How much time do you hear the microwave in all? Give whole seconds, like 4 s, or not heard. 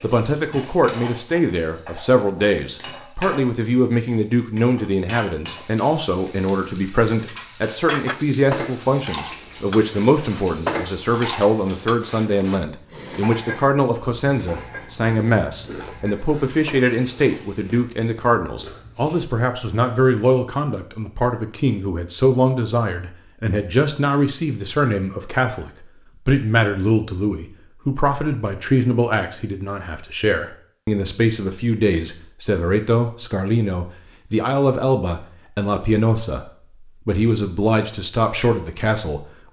not heard.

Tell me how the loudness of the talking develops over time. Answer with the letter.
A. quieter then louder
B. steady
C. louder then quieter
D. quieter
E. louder
B.